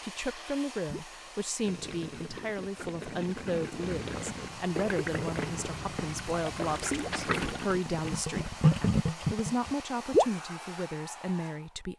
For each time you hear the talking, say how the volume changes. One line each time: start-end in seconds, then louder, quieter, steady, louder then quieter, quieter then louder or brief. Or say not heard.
0.0-11.9 steady.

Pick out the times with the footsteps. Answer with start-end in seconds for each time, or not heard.
3.8-7.5.